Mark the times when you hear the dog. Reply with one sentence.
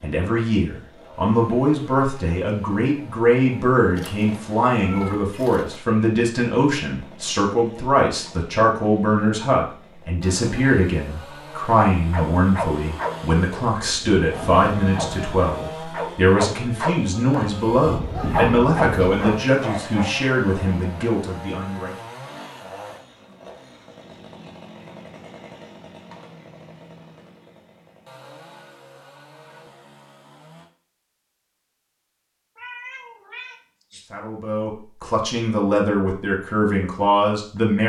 The dog can be heard from 12.1 to 20.2 s.